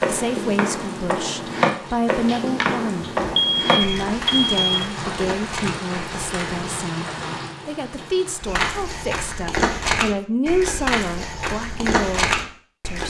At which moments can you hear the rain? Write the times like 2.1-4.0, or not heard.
0.2-8.7.